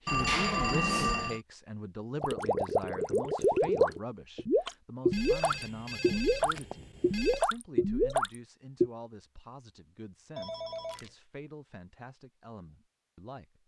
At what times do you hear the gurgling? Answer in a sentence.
The gurgling can be heard from 2.2 to 8.9 s.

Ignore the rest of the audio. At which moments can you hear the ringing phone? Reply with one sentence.
You can hear the ringing phone from 0.1 to 1.4 s, from 5.1 to 7.5 s and from 10.3 to 11.1 s.